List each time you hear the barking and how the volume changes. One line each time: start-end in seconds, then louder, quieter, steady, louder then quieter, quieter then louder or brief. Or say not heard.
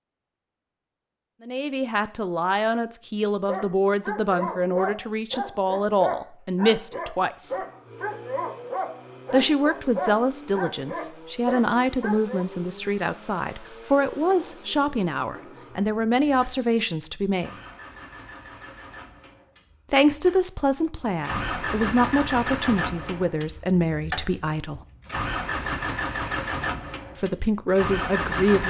3.5-12.4 steady.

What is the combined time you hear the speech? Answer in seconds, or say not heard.
21 s.